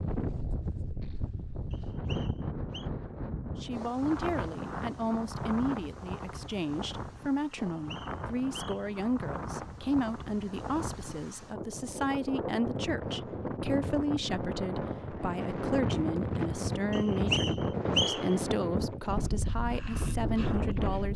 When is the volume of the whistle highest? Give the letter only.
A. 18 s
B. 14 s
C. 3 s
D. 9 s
A.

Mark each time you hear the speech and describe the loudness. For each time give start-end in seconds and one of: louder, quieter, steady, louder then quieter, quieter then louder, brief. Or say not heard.
3.6-21.1 steady.